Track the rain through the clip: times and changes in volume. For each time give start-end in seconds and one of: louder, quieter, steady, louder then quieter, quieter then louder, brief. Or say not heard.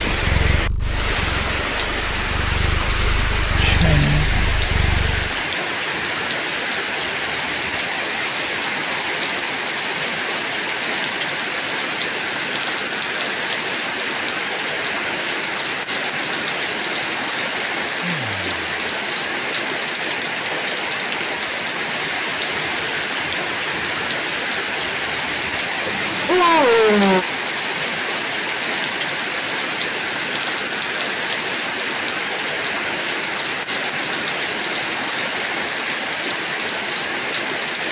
0.0-37.8 steady.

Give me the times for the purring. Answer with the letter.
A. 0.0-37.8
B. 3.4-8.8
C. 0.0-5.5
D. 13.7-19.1
C.